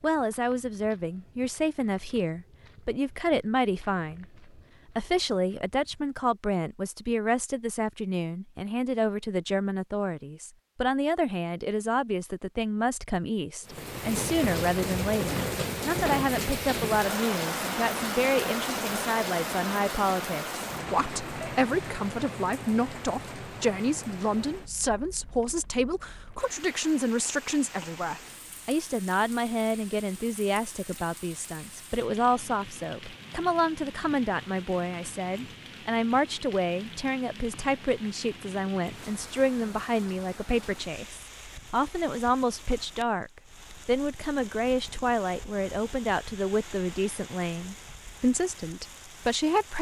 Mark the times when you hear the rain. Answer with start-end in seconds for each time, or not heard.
13.7-49.7.